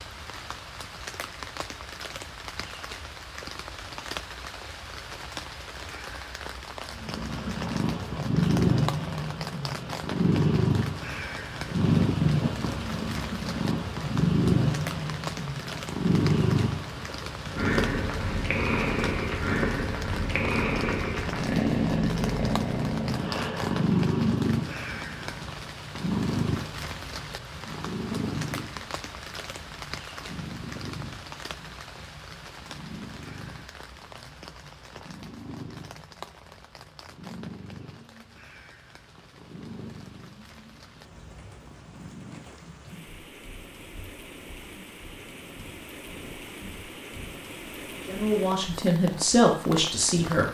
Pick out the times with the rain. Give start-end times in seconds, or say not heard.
0.0-50.4.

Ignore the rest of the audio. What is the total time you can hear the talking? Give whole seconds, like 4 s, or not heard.
2 s.